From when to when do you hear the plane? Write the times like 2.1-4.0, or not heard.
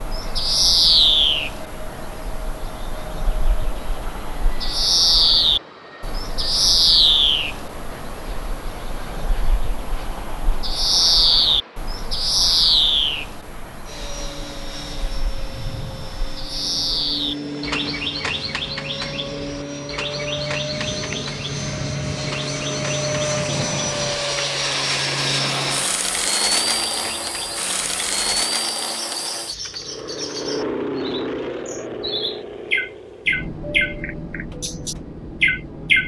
0.0-36.0.